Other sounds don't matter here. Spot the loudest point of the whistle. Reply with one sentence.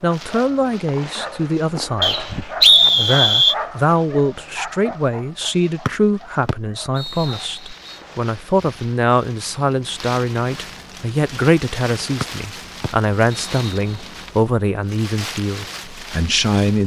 The loudest moment of the whistle is at 3 seconds.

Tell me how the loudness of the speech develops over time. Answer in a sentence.
The volume of the speech stays about the same.